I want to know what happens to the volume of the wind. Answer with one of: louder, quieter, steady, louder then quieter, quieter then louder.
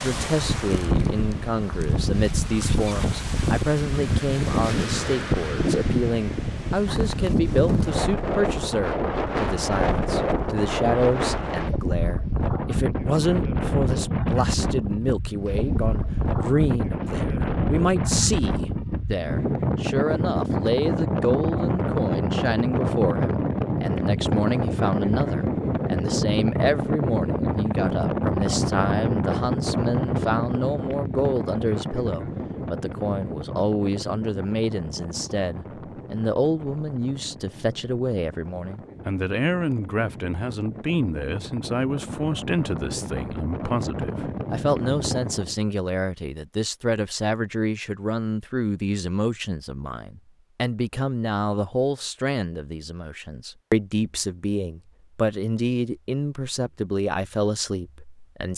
quieter.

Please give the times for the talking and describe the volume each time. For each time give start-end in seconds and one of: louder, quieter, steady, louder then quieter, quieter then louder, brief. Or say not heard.
0.0-58.5 steady.